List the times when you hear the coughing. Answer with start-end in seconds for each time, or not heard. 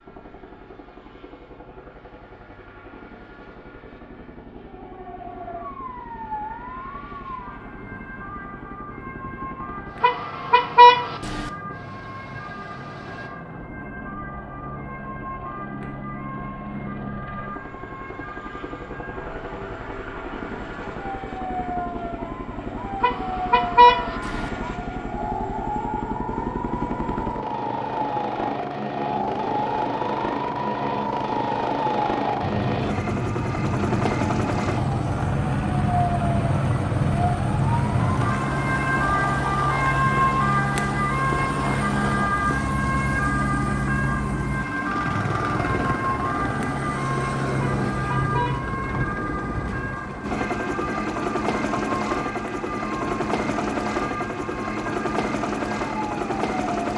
not heard.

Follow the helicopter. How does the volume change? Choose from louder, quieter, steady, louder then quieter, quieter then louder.
louder.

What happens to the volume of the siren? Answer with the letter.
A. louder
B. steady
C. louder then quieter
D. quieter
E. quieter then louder
C.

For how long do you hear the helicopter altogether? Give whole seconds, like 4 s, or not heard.
57 s.